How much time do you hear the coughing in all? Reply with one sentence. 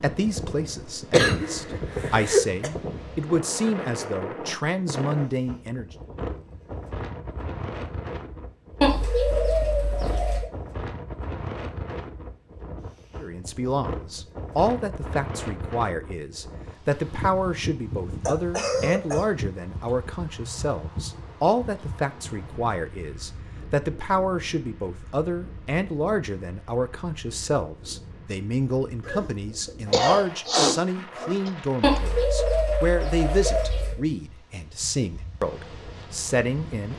The coughing can be heard for 5 seconds in total.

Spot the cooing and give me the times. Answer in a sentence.
You can hear the cooing from 8.8 to 10.5 s and from 31.8 to 34.0 s.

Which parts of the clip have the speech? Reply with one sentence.
You can hear the speech from 0.0 to 5.8 s and from 13.2 to 36.9 s.